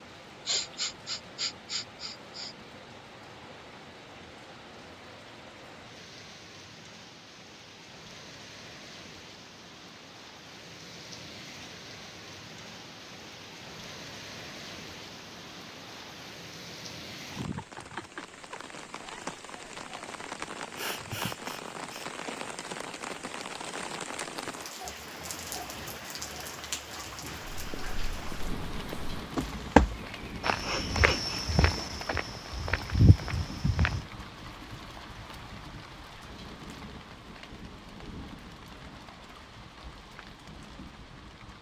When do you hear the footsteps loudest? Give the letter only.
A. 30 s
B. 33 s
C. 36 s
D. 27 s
A.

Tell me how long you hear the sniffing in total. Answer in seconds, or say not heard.
5 s.